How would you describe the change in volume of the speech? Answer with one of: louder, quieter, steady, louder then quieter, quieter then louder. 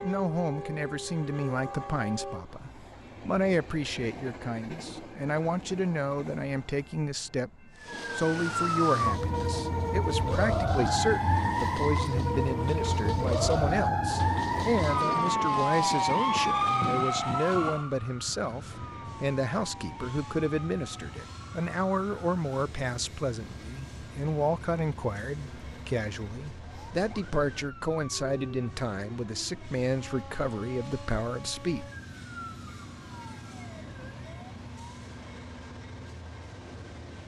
steady.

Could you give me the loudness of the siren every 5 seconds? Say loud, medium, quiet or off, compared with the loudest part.
off, loud, loud, loud, quiet, quiet, quiet, off.